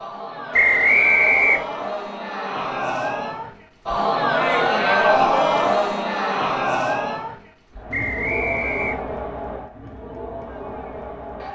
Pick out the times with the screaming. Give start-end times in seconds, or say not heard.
not heard.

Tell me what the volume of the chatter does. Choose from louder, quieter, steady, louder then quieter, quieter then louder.
louder then quieter.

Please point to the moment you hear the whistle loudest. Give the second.
1 s.